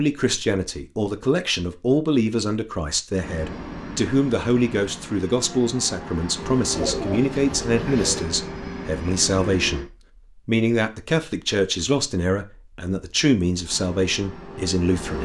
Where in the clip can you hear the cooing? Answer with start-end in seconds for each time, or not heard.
6.7-8.2.